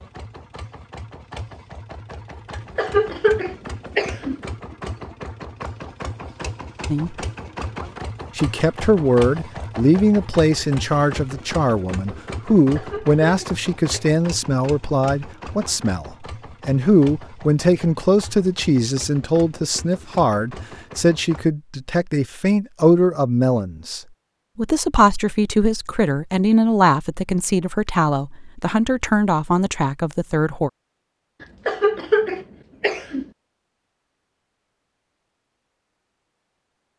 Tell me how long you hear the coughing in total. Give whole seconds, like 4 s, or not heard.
5 s.